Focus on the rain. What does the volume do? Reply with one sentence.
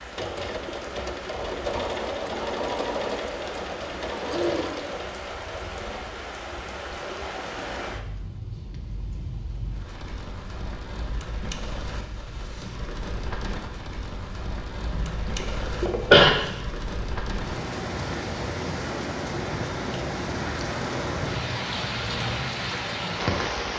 The volume of the rain goes up.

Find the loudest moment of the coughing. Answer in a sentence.
The loudest moment of the coughing is at 16 seconds.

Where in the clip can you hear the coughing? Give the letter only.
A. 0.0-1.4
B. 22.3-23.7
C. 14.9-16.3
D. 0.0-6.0
C.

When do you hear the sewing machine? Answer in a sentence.
The sewing machine can be heard from 0.0 to 6.0 s.